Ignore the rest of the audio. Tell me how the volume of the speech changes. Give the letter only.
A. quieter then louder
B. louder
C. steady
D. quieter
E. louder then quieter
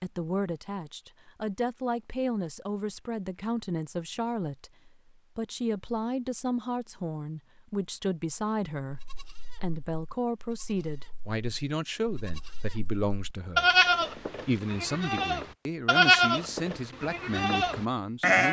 C.